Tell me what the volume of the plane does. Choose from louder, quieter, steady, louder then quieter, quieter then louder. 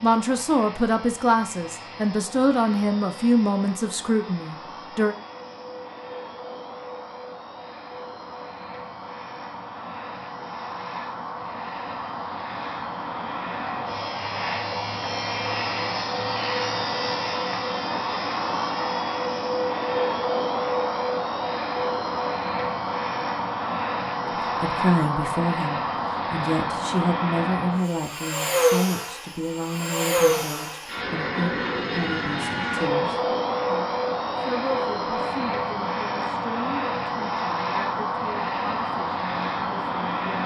louder.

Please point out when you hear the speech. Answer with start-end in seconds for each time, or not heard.
0.0-5.2, 24.4-40.4.